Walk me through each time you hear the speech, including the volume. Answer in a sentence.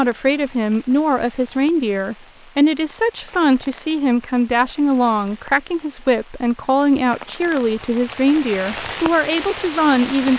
The speech can be heard from 0.0 to 10.3 s, at a steady volume.